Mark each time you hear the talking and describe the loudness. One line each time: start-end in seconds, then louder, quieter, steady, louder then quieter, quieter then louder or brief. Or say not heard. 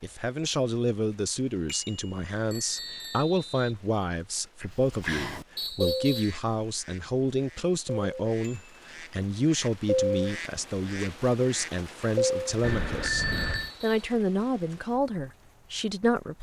0.0-16.3 steady.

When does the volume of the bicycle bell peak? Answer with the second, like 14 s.
13 s.